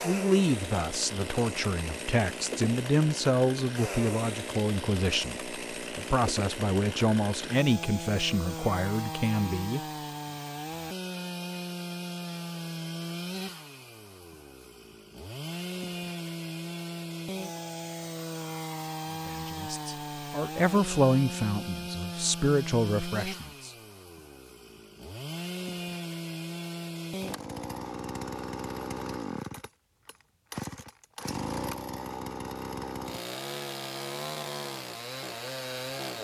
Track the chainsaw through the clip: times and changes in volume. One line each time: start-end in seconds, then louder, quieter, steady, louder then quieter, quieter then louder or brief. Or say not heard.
0.0-36.1 steady.